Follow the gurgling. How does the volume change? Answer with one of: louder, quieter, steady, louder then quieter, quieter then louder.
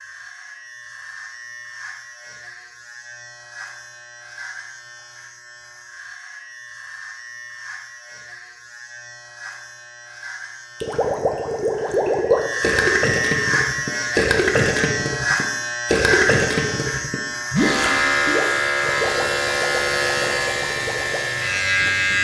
quieter.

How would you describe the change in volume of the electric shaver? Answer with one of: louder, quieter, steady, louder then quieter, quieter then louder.
louder.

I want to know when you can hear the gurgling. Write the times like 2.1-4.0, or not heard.
10.8-21.3.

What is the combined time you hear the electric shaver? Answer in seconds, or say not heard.
22 s.